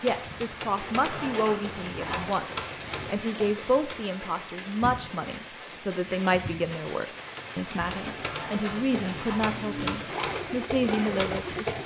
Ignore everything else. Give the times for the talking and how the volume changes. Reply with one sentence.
The talking can be heard from 0.0 to 11.8 s, at a steady volume.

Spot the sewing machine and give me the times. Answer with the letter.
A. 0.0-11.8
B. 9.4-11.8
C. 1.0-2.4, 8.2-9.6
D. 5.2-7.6
B.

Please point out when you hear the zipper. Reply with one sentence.
The zipper can be heard from 1.0 to 2.4 s and from 8.2 to 9.6 s.